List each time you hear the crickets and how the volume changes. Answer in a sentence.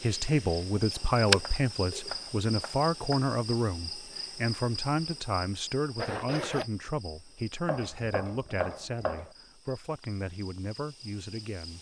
You can hear the crickets from 0.0 to 11.7 s, getting quieter.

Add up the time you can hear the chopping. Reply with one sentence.
You can hear the chopping for 4 seconds altogether.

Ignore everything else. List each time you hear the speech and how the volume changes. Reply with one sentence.
The speech can be heard from 0.0 to 11.7 s, getting quieter.